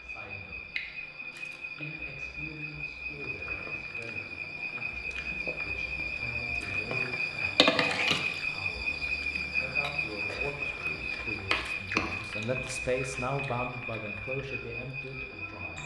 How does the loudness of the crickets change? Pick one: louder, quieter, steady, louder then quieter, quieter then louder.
louder then quieter.